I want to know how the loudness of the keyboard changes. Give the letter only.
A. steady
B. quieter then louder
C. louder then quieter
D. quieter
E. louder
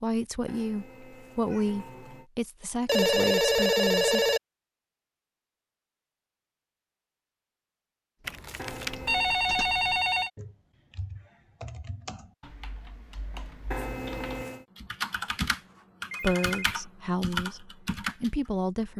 E.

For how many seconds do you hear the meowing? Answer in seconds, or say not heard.
4 s.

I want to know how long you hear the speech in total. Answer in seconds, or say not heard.
7 s.